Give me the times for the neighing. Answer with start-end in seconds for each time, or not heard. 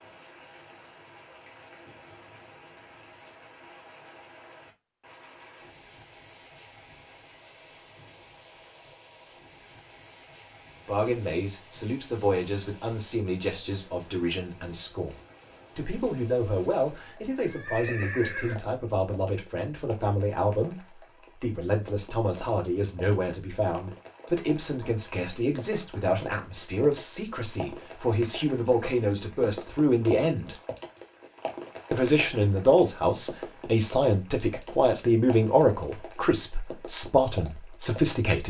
17.1-18.6.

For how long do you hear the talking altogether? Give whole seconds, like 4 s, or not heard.
26 s.